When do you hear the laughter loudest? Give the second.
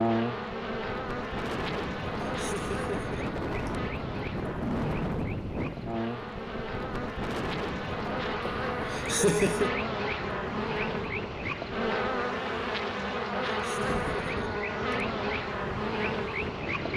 9 s.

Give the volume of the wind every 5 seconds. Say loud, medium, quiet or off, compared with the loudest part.
loud, loud, medium, medium.